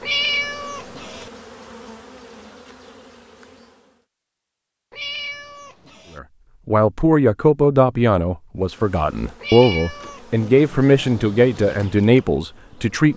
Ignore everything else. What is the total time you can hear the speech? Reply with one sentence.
The speech can be heard for 7 seconds in total.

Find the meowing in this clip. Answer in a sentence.
The meowing can be heard from 0.0 to 1.3 s, from 4.9 to 6.2 s and from 9.4 to 10.2 s.